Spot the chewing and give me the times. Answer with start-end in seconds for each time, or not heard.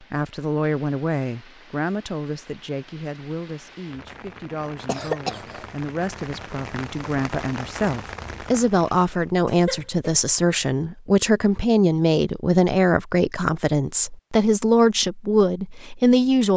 not heard.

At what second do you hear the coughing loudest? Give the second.
5 s.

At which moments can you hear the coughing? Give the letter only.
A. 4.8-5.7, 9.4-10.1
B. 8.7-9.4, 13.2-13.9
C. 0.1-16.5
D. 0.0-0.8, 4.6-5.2
A.